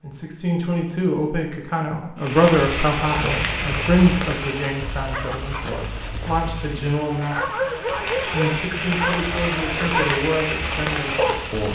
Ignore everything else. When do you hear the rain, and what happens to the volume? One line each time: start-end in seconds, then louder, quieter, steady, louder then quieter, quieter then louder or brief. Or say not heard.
2.1-11.6 quieter then louder.